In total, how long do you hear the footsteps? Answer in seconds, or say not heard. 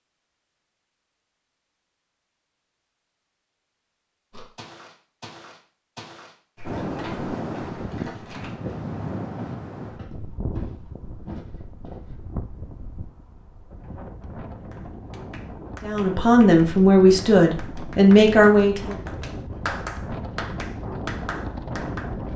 8 s.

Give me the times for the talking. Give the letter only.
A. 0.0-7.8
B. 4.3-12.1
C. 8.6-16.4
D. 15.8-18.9
D.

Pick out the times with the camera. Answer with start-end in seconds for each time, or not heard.
not heard.